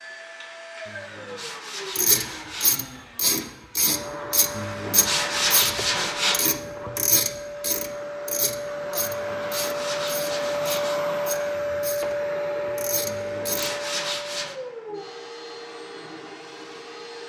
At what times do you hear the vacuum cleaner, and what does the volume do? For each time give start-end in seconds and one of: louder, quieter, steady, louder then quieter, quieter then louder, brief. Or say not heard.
0.0-17.2 louder then quieter.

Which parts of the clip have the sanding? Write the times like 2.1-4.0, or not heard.
0.8-2.8, 4.5-6.5, 8.9-11.1, 13.1-14.6.